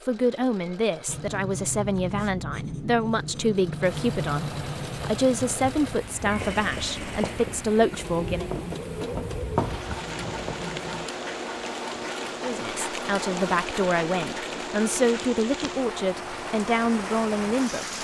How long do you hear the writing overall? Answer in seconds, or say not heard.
10 s.